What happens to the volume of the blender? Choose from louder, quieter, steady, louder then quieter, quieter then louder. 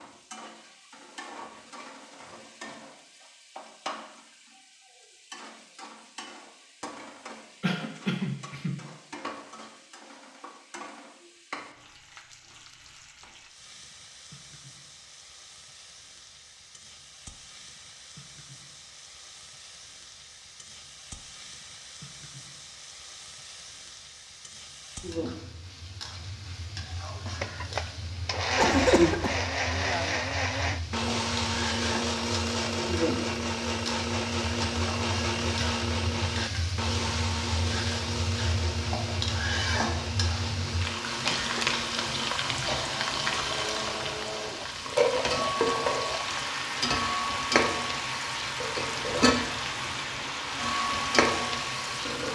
quieter.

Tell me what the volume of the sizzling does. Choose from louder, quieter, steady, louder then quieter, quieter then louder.
louder.